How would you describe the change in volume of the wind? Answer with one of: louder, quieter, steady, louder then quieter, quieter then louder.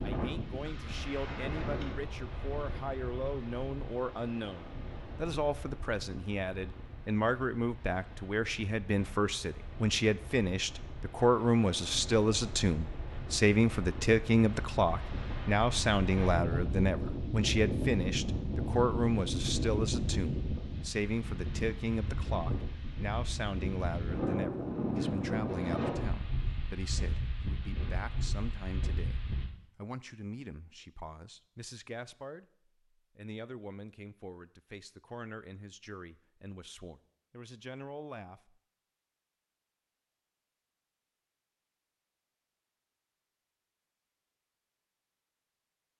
quieter then louder.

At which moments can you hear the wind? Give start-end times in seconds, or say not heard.
0.0-29.5.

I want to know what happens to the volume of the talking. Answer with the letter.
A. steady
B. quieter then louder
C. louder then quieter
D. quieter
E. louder
C.